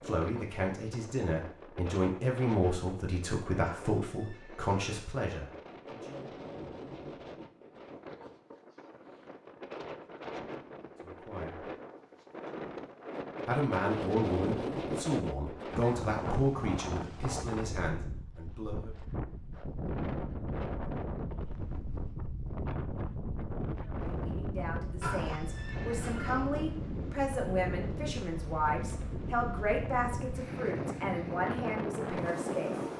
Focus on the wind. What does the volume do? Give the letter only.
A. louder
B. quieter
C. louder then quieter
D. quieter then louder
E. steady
A.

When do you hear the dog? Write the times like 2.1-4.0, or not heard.
not heard.